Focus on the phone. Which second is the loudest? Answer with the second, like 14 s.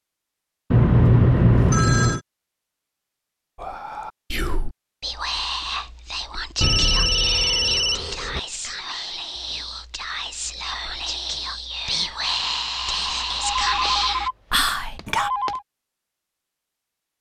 1 s.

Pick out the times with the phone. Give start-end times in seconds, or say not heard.
0.7-2.2, 6.6-8.4, 13.4-15.6.